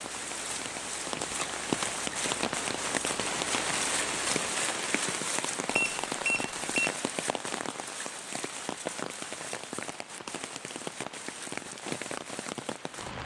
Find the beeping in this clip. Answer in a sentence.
The beeping can be heard from 5.7 to 7.0 s.